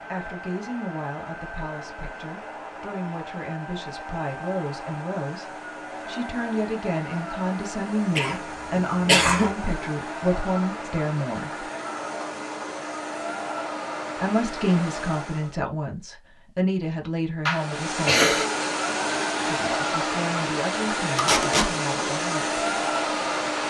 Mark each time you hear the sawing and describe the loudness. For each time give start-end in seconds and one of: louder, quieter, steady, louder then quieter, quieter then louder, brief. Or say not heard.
not heard.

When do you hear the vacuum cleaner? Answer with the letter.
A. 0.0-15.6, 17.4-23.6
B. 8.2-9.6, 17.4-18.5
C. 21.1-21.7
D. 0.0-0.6
A.